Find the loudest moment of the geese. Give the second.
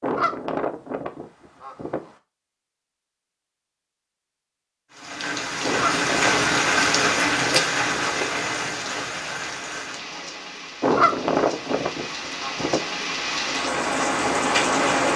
11 s.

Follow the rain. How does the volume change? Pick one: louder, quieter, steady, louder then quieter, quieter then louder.
quieter then louder.